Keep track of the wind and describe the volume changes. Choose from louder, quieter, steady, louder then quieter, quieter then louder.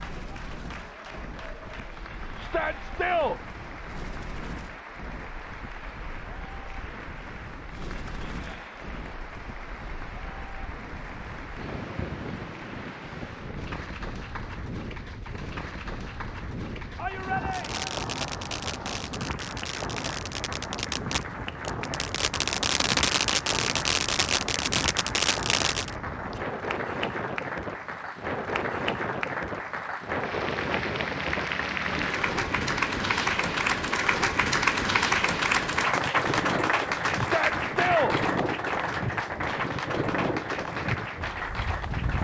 louder.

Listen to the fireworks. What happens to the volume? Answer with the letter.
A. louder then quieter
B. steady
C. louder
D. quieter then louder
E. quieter
C.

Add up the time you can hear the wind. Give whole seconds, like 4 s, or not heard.
42 s.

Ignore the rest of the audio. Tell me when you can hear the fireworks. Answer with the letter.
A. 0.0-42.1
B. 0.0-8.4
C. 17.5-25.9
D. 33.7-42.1
C.